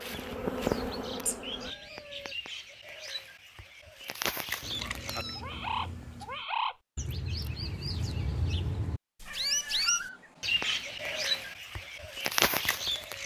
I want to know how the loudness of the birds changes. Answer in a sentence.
The volume of the birds goes up.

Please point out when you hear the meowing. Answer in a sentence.
You can hear the meowing from 1.2 to 2.4 s, from 4.6 to 6.4 s and from 9.2 to 11.6 s.